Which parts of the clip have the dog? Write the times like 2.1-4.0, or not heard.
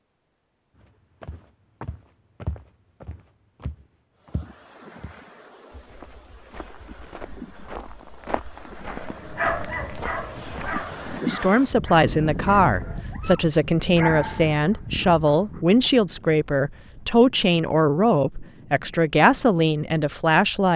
8.9-15.7.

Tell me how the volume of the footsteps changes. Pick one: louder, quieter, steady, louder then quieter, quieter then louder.
quieter then louder.